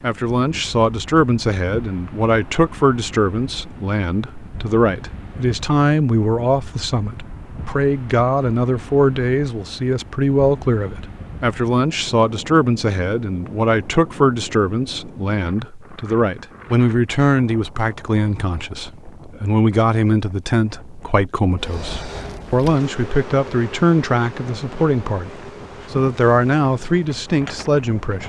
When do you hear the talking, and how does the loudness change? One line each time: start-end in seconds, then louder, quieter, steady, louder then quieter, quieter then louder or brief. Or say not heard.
0.0-28.2 steady.